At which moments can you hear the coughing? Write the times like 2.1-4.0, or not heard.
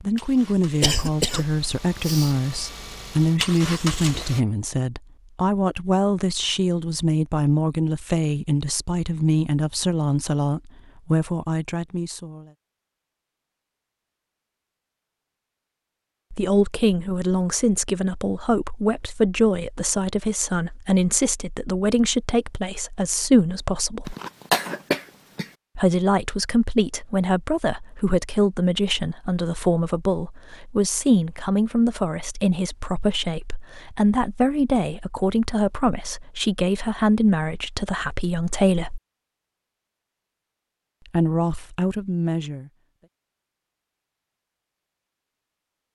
0.8-2.4, 24.1-25.5.